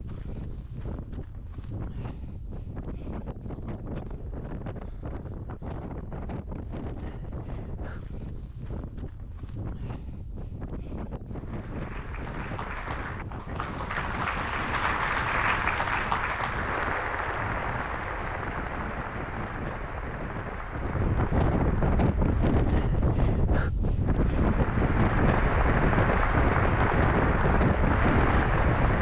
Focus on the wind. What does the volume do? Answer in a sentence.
The volume of the wind goes up.